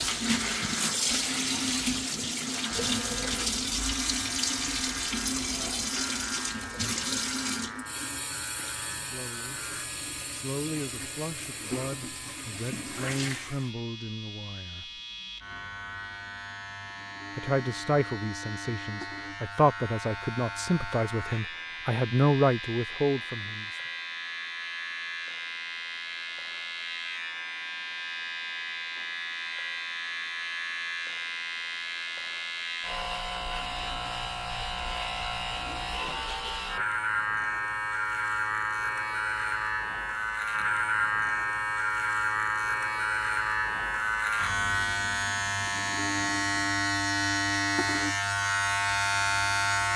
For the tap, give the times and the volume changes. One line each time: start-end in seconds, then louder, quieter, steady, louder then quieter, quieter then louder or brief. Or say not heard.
0.0-13.7 quieter.